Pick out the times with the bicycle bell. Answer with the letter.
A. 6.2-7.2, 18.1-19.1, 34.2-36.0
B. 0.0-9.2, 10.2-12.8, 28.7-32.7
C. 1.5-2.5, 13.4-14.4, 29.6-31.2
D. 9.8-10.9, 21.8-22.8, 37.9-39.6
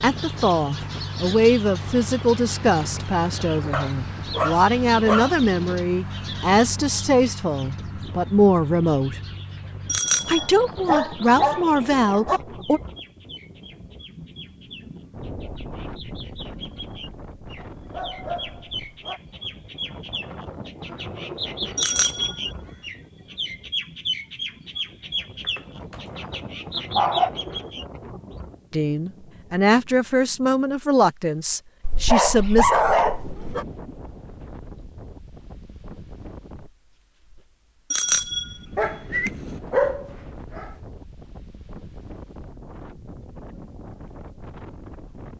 D.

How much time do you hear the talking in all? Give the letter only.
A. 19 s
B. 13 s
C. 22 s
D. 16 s
D.